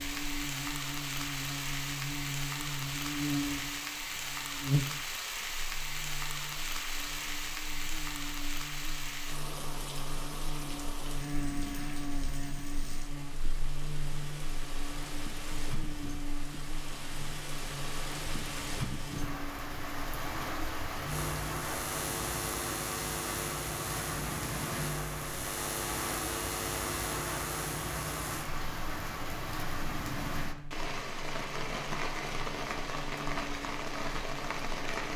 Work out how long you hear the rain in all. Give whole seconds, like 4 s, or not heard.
35 s.